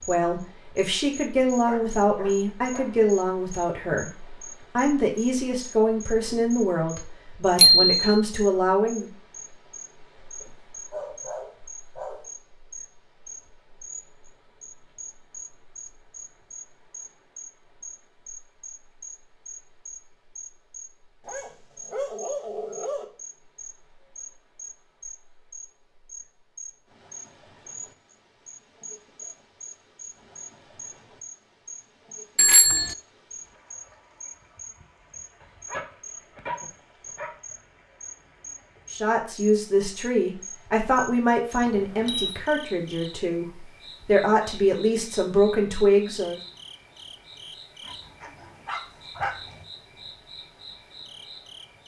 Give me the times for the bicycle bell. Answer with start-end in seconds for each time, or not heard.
7.5-8.0, 32.4-33.0, 41.6-42.4.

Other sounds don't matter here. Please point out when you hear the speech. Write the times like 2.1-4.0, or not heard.
0.1-9.1, 38.9-46.4.